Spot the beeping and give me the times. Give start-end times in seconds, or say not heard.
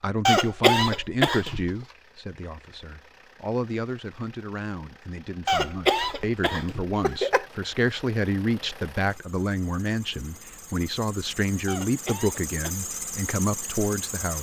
not heard.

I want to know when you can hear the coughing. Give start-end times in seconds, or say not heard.
0.2-1.7, 5.5-7.5, 11.7-12.7.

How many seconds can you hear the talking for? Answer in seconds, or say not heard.
14 s.